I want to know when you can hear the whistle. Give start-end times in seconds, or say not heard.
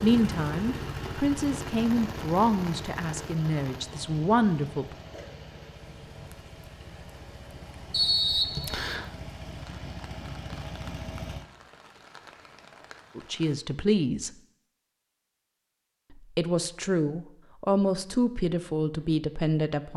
7.9-9.1.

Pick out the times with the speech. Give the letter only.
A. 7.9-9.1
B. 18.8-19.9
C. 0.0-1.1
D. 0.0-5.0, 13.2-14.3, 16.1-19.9
D.